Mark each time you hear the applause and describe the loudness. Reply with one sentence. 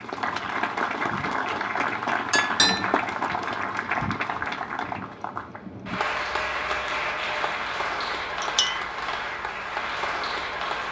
The applause can be heard from 0.0 to 10.8 s, at a steady volume.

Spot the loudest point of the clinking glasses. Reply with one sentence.
The volume of the clinking glasses peaks at 3 seconds.